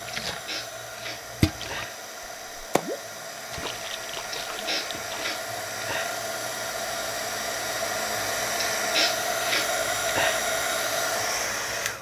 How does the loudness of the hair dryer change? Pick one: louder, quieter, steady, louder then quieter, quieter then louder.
louder.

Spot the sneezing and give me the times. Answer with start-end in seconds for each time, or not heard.
0.2-1.9, 4.3-6.2, 8.6-10.4.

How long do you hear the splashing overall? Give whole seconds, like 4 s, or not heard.
5 s.